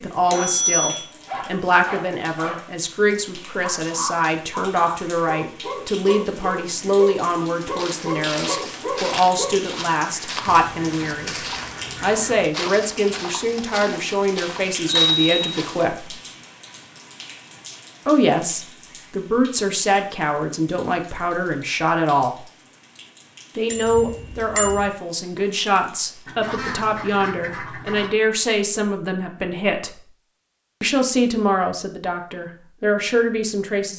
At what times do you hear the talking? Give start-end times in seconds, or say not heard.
0.0-11.3, 12.0-16.1, 18.1-22.4, 23.6-30.1, 30.8-33.9.